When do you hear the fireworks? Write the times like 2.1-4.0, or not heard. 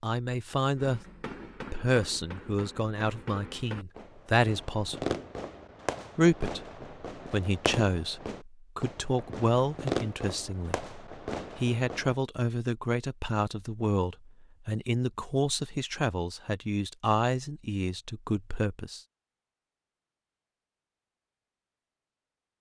0.8-12.2.